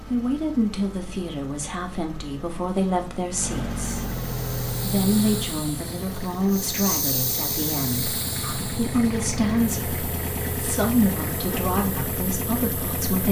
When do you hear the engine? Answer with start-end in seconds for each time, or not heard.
0.0-13.2.